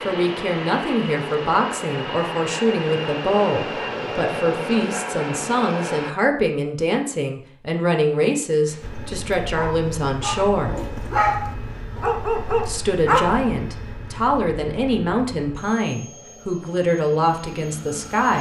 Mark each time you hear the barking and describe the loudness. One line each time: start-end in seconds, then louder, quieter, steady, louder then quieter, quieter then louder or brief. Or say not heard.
8.7-13.3 louder.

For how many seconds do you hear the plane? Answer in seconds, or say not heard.
16 s.